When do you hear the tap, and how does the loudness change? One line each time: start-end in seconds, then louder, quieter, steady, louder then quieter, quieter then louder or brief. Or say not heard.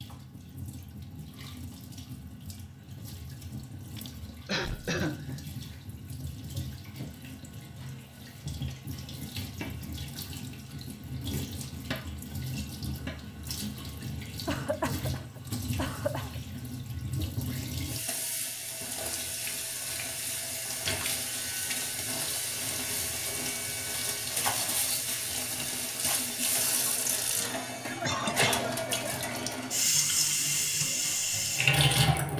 0.0-32.3 louder.